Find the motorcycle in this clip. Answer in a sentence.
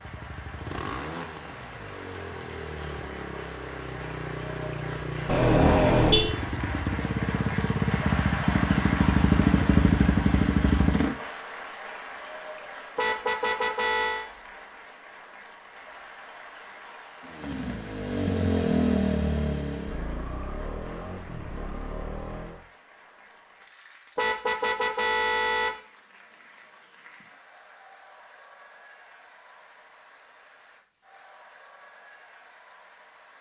You can hear the motorcycle from 0.0 to 11.2 s and from 17.2 to 22.6 s.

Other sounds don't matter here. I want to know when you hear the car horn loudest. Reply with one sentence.
The volume of the car horn peaks at 6 seconds.